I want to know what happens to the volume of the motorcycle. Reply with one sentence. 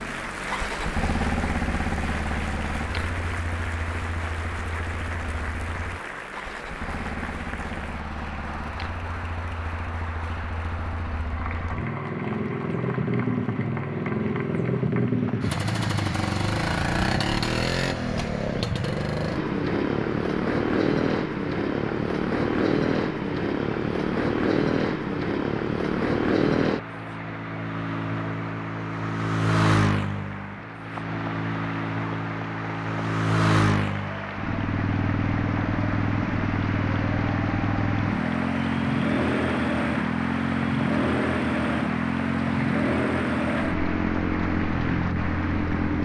The loudness of the motorcycle goes up.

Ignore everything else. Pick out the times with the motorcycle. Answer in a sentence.
You can hear the motorcycle from 0.0 to 46.0 s.